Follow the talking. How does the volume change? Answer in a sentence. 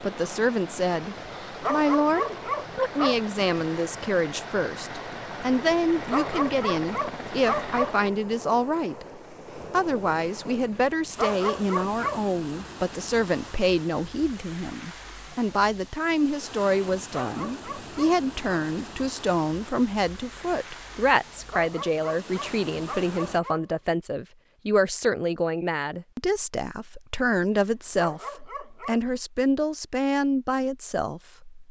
The volume of the talking stays about the same.